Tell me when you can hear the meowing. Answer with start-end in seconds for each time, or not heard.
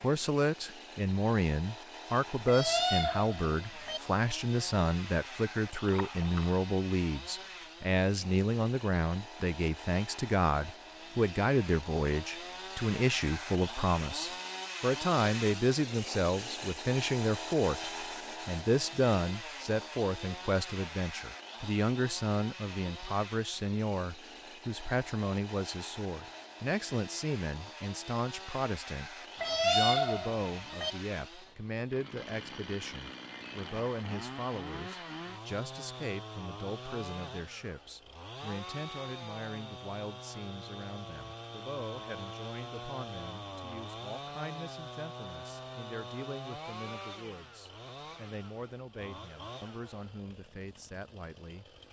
2.5-4.0, 29.4-30.9.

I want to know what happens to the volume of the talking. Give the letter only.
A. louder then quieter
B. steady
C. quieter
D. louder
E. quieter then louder
C.